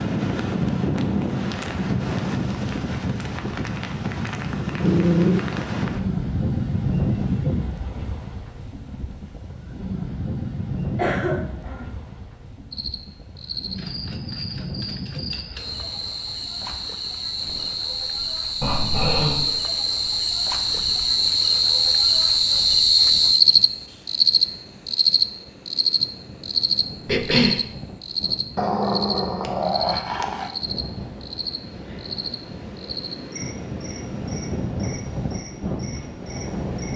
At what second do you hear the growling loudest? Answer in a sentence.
The volume of the growling peaks at 5 seconds.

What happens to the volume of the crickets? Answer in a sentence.
The loudness of the crickets goes up, then down.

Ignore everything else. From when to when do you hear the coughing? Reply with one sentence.
The coughing can be heard from 10.9 to 11.8 s and from 27.1 to 27.6 s.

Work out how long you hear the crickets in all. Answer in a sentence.
The crickets can be heard for 24 seconds in total.